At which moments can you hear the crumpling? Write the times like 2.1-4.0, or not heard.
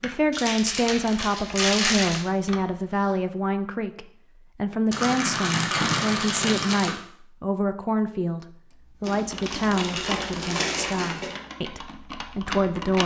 0.3-2.2, 4.9-6.9, 9.1-11.3.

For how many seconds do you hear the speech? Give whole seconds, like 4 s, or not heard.
13 s.